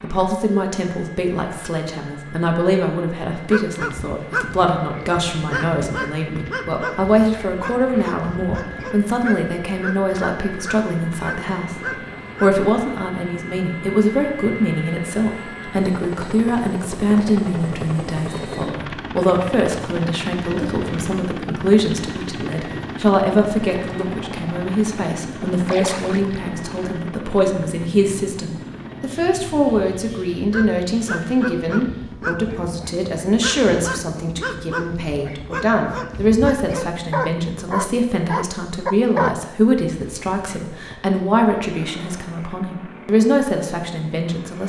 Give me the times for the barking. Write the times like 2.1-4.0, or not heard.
3.4-12.5, 30.4-39.4.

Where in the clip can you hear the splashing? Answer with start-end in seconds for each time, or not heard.
25.6-26.5.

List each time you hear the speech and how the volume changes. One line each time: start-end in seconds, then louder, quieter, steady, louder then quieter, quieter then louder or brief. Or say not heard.
0.0-44.6 steady.